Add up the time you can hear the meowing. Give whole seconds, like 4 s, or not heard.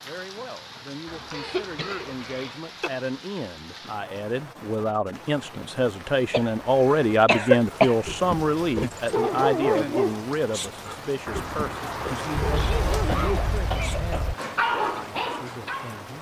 3 s.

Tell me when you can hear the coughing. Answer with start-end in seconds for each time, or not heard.
1.3-2.9, 6.3-8.0, 12.3-14.3.